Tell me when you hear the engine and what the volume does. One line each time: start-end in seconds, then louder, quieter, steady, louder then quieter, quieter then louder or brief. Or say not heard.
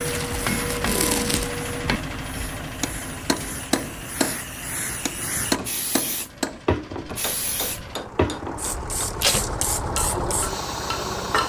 0.0-11.4 quieter then louder.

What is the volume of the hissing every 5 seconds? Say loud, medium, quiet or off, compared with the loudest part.
medium, loud, loud.